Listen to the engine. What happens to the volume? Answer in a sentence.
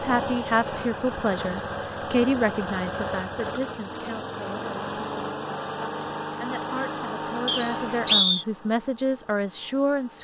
The volume of the engine goes down.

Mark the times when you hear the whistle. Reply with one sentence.
The whistle can be heard from 7.5 to 8.4 s.